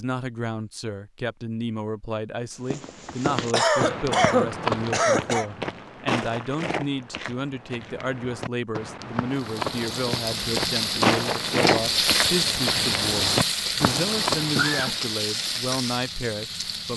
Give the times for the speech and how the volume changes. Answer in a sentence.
The speech can be heard from 0.0 to 16.9 s, at a steady volume.